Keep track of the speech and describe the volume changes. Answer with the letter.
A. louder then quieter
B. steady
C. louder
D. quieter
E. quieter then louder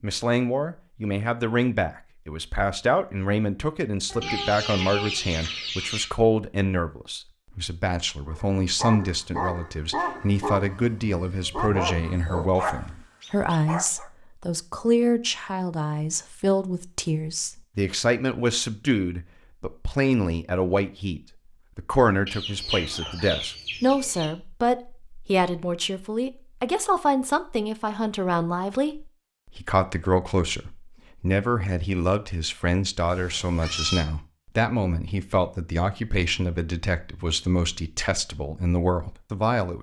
B.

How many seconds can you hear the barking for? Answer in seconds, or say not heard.
6 s.